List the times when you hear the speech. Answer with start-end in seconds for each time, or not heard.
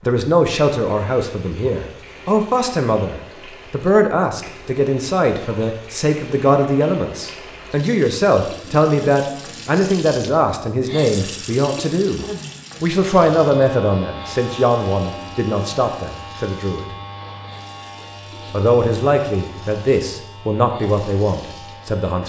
0.0-16.9, 18.5-22.2.